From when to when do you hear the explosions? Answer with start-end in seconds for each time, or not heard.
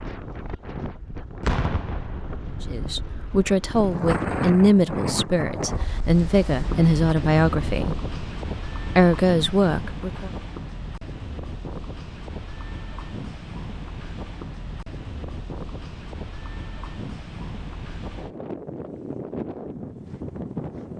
1.4-2.6.